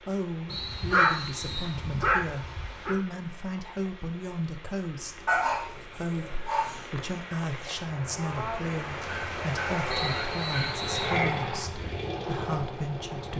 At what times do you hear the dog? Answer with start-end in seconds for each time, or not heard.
0.5-3.0, 5.2-7.0, 9.0-11.4.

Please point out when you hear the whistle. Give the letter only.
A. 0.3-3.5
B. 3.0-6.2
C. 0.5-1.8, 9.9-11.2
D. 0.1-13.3
C.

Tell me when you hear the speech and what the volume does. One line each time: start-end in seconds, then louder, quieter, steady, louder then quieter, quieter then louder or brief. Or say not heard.
0.1-13.3 steady.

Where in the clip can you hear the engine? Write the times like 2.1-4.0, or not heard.
10.1-13.3.